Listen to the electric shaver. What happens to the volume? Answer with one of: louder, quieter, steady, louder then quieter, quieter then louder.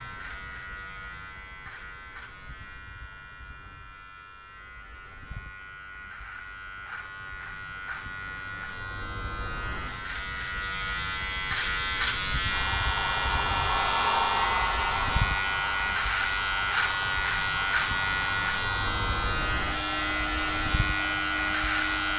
louder.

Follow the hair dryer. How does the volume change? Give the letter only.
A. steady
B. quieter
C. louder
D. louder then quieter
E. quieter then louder
B.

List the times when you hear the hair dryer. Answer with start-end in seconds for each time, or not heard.
12.4-22.1.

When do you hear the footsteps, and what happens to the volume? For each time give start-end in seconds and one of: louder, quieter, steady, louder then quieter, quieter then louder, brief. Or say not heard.
not heard.